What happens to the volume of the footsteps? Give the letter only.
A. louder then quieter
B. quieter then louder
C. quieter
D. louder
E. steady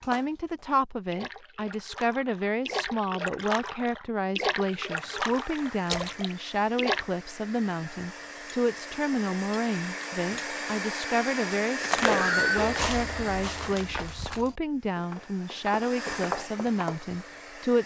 B.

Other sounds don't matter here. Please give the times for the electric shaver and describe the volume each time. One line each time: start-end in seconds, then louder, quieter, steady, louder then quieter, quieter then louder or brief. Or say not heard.
not heard.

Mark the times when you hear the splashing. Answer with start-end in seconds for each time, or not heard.
0.0-7.0.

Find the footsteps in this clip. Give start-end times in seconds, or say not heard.
11.8-17.0.